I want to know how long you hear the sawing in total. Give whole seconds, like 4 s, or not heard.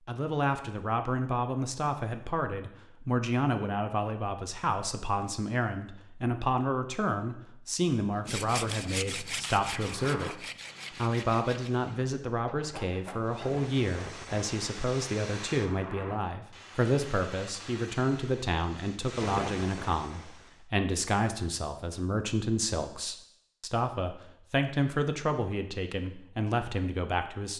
6 s.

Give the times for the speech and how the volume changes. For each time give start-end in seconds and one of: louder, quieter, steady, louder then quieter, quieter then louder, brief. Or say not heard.
0.1-27.5 steady.